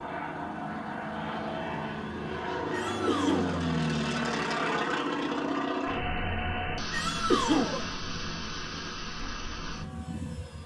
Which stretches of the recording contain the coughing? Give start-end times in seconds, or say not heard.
3.0-3.5, 7.2-7.8.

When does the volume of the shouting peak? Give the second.
7 s.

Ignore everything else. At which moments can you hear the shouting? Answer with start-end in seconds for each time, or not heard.
2.7-3.5, 6.9-7.9.